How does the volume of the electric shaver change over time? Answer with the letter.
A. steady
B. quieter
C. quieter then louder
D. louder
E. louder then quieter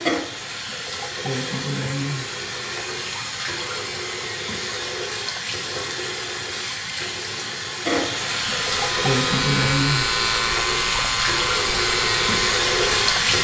A.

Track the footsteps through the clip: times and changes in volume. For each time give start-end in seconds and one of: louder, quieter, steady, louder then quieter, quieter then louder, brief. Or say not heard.
not heard.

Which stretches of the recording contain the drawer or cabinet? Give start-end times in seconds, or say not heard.
not heard.